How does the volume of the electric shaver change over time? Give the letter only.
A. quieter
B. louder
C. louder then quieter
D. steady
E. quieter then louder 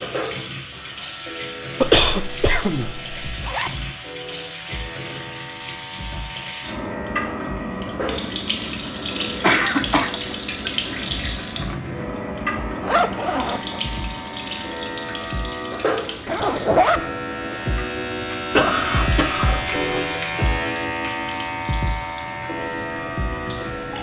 B.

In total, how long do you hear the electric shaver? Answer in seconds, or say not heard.
24 s.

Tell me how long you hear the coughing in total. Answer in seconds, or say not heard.
4 s.